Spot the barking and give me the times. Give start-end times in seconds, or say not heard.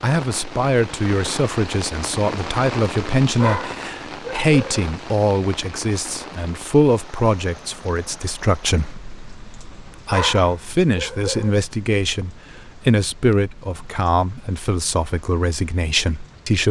3.4-4.8, 10.1-11.7.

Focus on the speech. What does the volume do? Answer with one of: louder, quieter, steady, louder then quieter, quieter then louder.
steady.